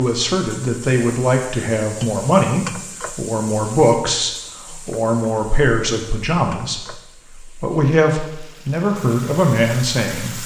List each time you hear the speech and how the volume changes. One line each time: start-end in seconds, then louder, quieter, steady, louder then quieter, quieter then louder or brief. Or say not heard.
0.0-10.4 steady.